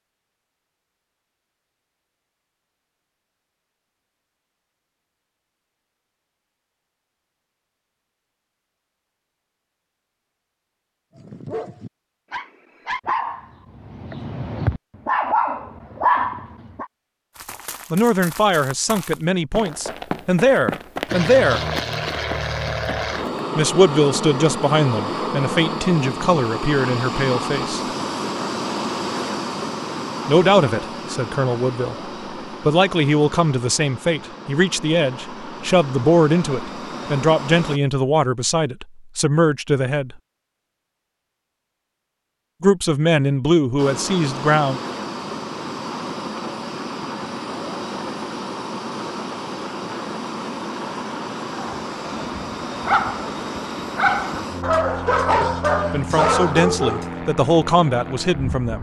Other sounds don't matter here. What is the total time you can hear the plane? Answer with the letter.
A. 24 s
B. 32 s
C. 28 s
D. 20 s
B.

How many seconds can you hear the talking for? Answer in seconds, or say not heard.
23 s.